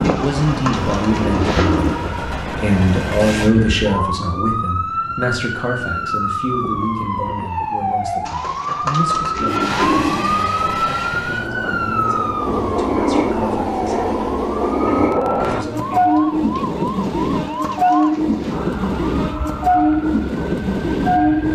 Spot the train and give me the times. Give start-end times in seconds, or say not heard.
0.0-3.5, 9.4-21.5.